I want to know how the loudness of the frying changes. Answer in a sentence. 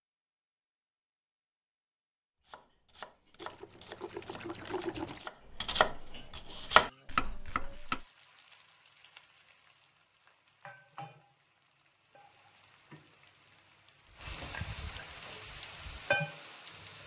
The loudness of the frying goes up.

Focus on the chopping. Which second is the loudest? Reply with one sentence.
The volume of the chopping peaks at 7 seconds.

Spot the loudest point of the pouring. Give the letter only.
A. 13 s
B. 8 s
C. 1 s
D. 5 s
D.